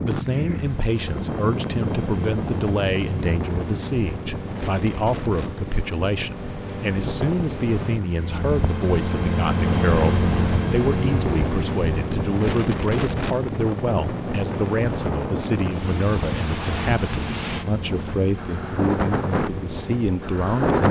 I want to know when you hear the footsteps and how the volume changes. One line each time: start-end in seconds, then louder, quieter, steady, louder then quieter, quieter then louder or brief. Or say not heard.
not heard.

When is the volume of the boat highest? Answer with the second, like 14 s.
10 s.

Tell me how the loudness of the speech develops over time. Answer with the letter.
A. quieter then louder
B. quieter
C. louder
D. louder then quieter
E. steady
E.